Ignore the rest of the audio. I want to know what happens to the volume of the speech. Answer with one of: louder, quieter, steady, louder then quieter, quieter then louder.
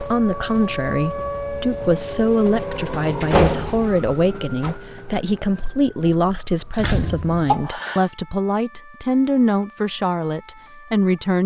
steady.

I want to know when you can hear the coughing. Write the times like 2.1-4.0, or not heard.
7.5-8.1.